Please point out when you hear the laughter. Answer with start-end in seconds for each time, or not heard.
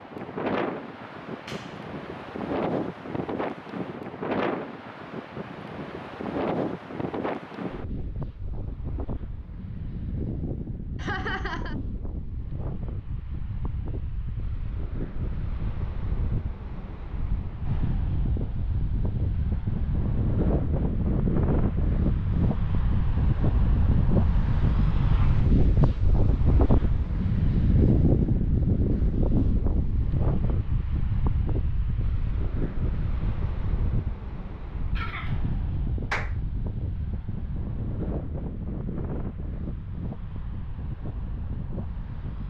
10.9-11.8, 35.0-35.5.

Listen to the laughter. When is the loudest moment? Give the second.
11 s.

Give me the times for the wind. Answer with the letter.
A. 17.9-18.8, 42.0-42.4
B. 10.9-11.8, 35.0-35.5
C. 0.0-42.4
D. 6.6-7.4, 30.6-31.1
C.